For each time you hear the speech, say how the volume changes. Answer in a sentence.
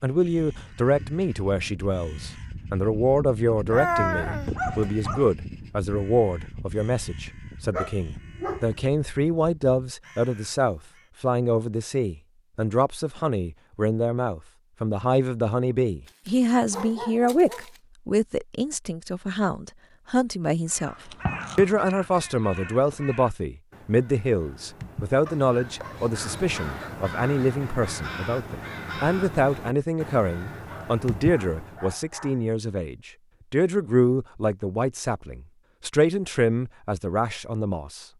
You can hear the speech from 0.0 to 38.0 s, at a steady volume.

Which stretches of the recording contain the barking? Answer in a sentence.
You can hear the barking from 3.7 to 5.2 s, from 7.7 to 8.8 s, from 16.1 to 17.8 s, from 25.2 to 26.9 s and from 30.7 to 32.5 s.